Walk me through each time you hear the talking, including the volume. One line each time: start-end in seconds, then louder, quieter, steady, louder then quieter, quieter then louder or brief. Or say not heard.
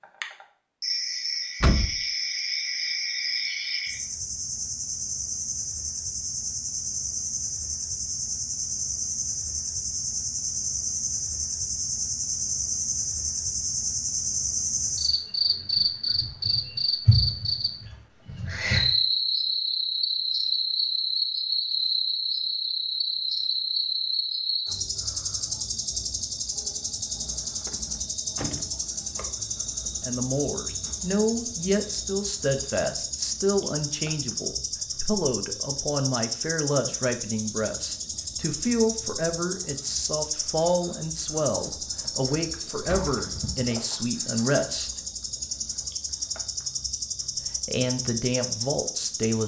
30.0-45.0 steady
47.6-49.4 brief.